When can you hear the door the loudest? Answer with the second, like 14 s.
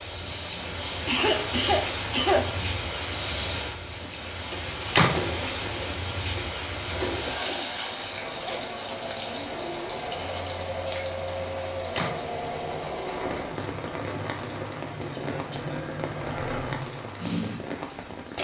5 s.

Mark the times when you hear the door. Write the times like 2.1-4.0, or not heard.
4.5-5.3, 11.5-12.3.